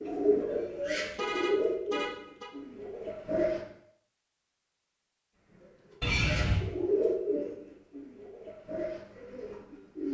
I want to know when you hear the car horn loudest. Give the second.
6 s.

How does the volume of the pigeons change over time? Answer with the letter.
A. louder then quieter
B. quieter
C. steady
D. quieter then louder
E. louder
B.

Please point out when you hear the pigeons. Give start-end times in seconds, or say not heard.
0.0-3.6, 5.5-10.0.